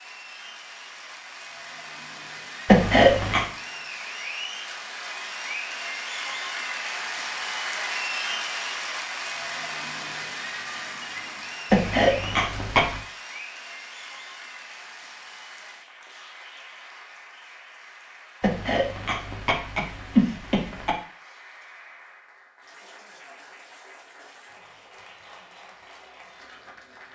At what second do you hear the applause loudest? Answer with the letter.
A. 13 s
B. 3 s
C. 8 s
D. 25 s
C.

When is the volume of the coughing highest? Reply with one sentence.
The loudest moment of the coughing is at 3 seconds.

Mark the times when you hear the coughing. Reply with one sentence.
You can hear the coughing from 2.6 to 3.5 s, from 11.7 to 13.0 s and from 18.4 to 20.9 s.